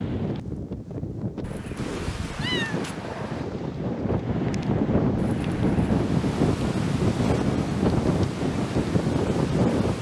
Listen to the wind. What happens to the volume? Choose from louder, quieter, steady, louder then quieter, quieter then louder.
louder.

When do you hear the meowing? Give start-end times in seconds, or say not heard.
1.4-3.5, 5.2-6.0.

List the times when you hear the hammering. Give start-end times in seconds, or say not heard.
not heard.